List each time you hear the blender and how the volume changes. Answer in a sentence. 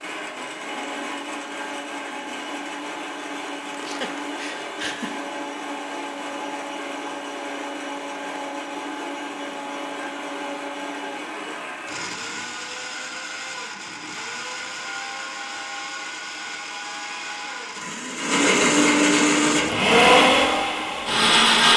The blender can be heard from 0.0 to 21.7 s, getting louder.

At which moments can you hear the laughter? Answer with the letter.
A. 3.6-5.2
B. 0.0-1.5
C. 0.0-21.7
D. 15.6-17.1
A.